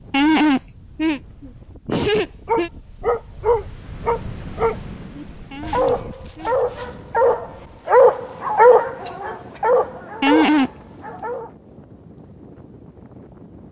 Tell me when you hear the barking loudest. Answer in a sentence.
The volume of the barking peaks at 9 seconds.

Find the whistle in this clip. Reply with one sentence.
You can't hear the whistle here.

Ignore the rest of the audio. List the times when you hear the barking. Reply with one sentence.
You can hear the barking from 1.9 to 11.5 s.